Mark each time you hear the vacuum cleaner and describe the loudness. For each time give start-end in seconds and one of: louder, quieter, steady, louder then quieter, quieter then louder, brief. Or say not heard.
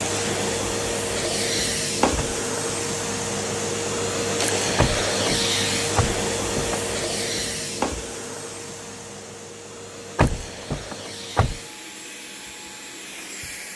0.0-13.7 quieter.